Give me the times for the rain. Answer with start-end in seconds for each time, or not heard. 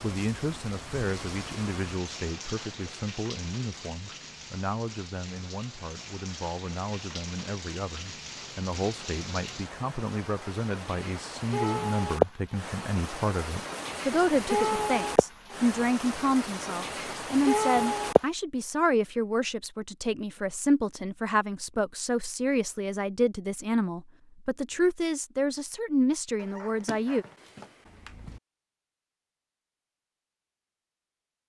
0.0-18.2.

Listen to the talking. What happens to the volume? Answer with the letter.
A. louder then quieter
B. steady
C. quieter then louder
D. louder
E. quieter
D.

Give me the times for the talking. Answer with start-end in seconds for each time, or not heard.
0.0-27.2.